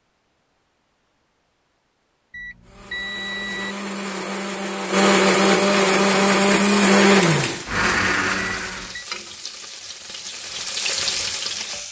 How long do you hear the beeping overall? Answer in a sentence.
You can hear the beeping for 2 seconds altogether.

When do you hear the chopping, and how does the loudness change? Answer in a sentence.
The chopping can't be heard in this clip.